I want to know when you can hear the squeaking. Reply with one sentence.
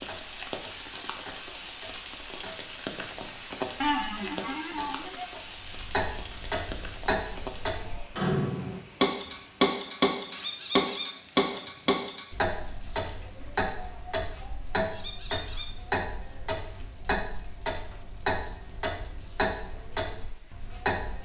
The squeaking can be heard from 3.8 to 5.3 s, from 10.3 to 11.1 s and from 14.9 to 15.7 s.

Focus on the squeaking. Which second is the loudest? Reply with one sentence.
The loudest moment of the squeaking is at 4 seconds.